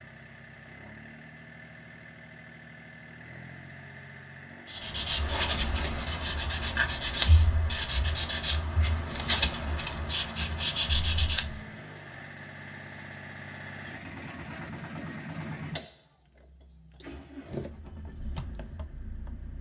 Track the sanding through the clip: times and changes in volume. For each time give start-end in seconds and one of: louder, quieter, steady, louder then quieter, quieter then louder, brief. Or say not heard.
4.7-11.6 steady.